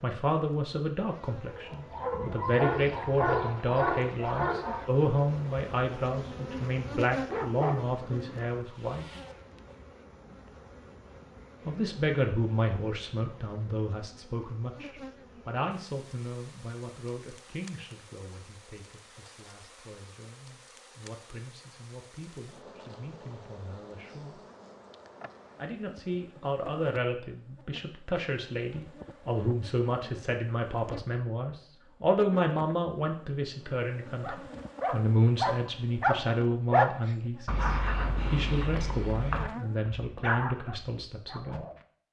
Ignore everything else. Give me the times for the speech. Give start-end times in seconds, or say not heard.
0.0-9.1, 11.7-24.4, 25.6-41.6.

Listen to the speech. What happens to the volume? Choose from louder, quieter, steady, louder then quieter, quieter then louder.
quieter then louder.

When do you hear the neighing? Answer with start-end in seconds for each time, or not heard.
not heard.